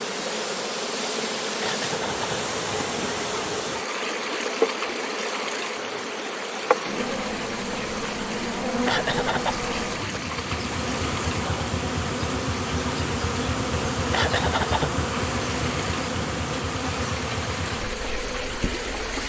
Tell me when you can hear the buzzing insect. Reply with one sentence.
You can hear the buzzing insect from 0.0 to 19.2 s.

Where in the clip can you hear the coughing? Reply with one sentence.
You can hear the coughing from 1.6 to 2.5 s, from 8.8 to 9.6 s and from 14.1 to 14.9 s.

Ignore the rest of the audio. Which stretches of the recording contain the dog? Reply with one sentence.
You can't hear the dog here.